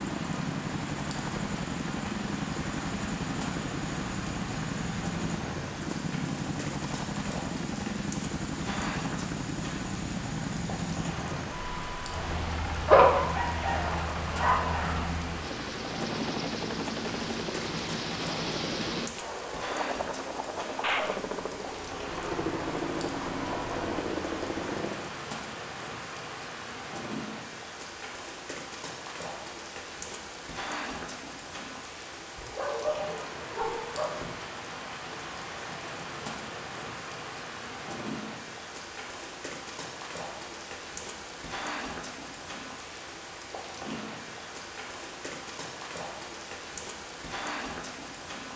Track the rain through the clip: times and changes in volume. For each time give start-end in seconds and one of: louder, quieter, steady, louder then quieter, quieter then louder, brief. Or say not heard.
0.0-48.5 steady.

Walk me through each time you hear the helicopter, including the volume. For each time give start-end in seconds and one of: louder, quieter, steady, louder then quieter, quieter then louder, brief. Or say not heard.
0.0-25.1 steady.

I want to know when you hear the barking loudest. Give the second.
13 s.